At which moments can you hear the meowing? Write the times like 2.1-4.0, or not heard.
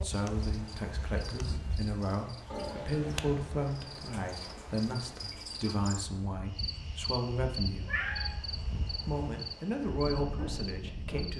2.5-3.4, 7.8-8.3.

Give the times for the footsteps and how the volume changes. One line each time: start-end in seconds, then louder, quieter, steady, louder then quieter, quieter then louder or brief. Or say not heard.
not heard.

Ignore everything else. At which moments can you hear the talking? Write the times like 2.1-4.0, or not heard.
0.0-8.0, 9.0-11.3.